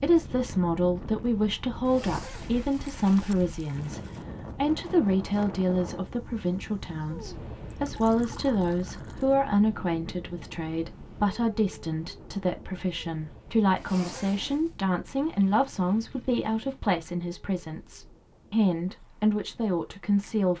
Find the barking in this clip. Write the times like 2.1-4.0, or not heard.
not heard.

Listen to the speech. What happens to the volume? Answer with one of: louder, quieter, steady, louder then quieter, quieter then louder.
steady.